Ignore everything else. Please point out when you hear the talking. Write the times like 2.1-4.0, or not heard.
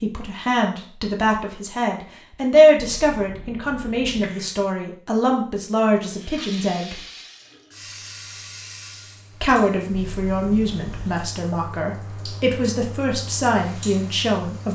0.0-7.0, 9.4-14.7.